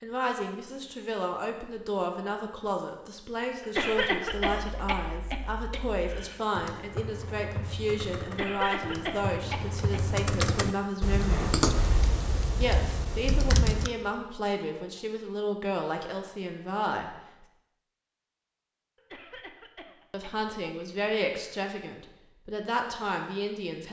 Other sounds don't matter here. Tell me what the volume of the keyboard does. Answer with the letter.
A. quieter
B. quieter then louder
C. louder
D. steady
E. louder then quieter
E.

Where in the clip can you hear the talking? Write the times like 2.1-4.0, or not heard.
0.0-11.6, 12.6-17.1, 20.1-23.8.